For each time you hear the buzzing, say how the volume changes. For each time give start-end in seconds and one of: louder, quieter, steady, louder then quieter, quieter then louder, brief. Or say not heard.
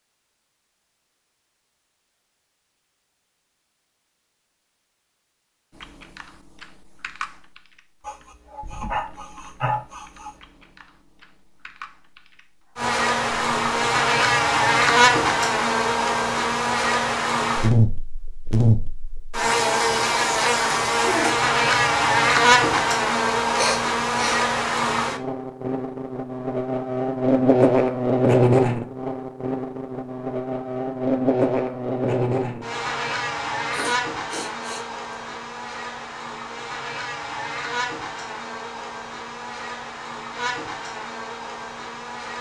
12.8-42.3 quieter.